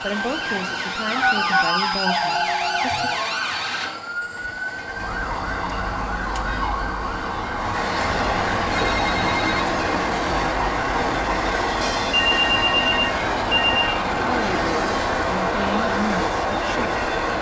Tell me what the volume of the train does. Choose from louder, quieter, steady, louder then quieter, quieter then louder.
louder.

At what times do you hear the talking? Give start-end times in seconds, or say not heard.
0.0-3.1, 14.2-16.9.